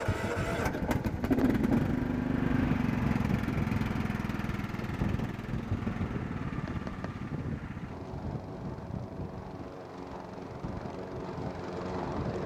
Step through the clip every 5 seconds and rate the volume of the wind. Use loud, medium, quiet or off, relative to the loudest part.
loud, loud, medium.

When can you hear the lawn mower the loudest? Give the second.
2 s.